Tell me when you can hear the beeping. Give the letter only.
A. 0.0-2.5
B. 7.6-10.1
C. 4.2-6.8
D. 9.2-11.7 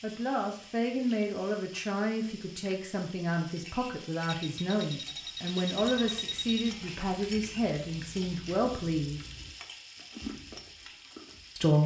C.